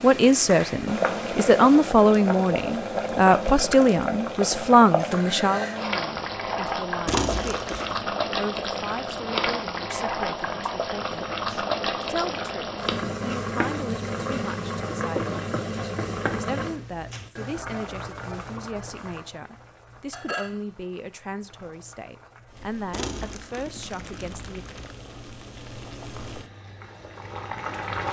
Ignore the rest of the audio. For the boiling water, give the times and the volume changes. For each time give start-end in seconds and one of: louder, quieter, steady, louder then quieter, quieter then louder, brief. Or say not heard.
0.0-28.0 quieter.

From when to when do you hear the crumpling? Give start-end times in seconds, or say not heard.
7.0-8.0, 22.9-24.9.